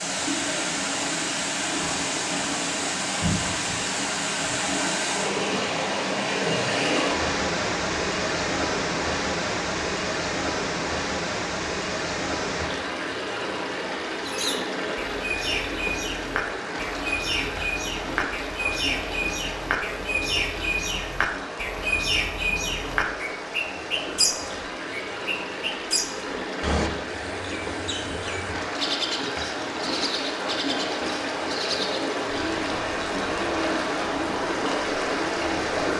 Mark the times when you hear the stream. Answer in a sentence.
You can hear the stream from 0.0 to 35.9 s.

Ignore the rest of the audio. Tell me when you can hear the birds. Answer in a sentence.
You can hear the birds from 14.2 to 35.6 s.